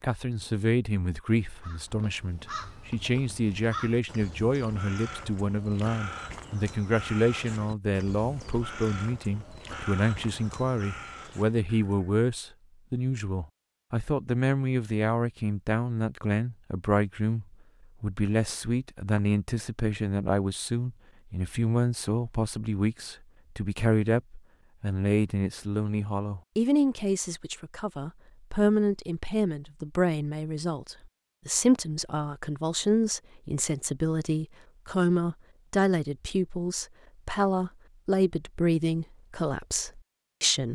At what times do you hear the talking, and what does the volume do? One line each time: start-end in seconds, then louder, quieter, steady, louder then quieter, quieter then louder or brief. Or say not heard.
0.0-40.6 steady.